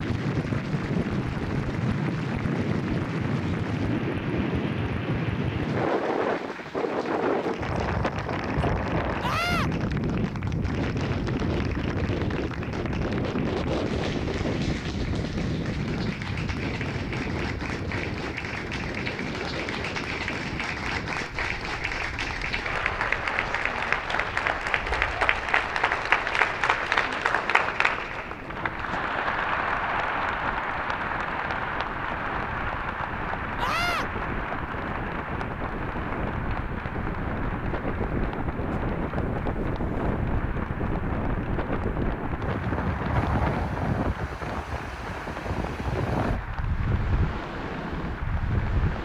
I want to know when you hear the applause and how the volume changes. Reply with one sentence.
You can hear the applause from 0.0 to 48.9 s, getting louder then quieter.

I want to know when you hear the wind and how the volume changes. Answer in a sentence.
The wind can be heard from 0.0 to 48.9 s, getting quieter then louder.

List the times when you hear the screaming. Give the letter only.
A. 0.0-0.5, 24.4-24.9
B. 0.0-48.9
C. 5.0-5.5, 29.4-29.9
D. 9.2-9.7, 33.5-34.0
D.